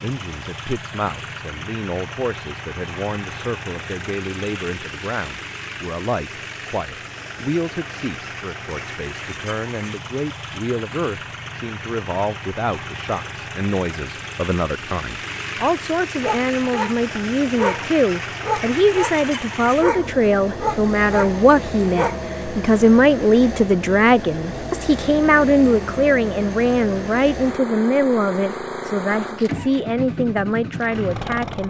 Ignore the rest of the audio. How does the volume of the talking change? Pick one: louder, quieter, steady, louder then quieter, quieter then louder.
louder.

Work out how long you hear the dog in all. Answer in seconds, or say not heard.
6 s.